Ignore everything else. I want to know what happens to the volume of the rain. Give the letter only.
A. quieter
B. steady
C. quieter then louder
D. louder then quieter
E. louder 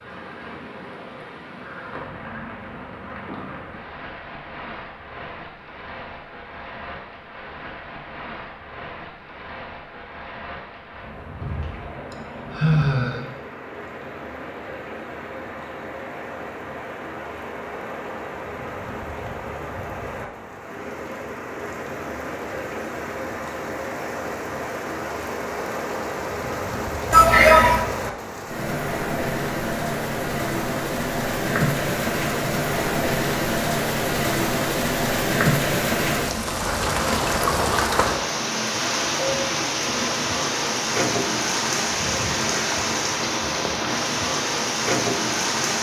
E.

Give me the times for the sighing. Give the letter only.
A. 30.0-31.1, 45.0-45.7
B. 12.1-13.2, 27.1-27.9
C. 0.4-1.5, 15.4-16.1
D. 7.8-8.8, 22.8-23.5
B.